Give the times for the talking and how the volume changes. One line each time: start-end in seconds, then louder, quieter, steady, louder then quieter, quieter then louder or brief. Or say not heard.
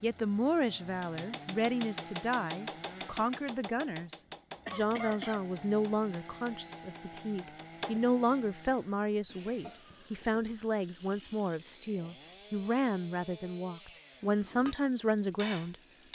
0.0-16.1 steady.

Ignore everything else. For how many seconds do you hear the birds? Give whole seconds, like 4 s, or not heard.
not heard.